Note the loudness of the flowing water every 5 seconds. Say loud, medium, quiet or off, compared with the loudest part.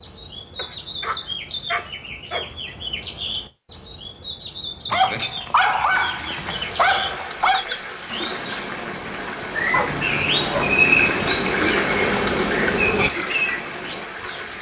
off, medium, loud.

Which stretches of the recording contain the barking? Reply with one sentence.
You can hear the barking from 0.6 to 2.5 s, from 4.8 to 7.6 s and from 9.7 to 10.9 s.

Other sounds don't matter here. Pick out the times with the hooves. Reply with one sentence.
You can't hear the hooves here.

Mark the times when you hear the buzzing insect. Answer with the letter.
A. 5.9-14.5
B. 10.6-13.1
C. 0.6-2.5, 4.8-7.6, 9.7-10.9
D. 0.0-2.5
B.